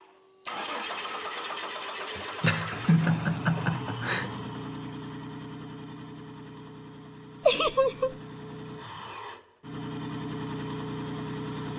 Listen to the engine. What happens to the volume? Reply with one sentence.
The volume of the engine goes down, then up.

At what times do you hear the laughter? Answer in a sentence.
The laughter can be heard from 2.4 to 4.3 s and from 7.5 to 8.2 s.